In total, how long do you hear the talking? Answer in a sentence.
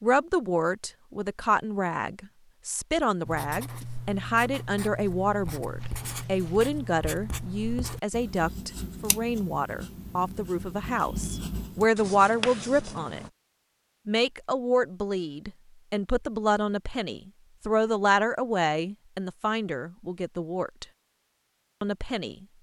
You can hear the talking for 21 seconds altogether.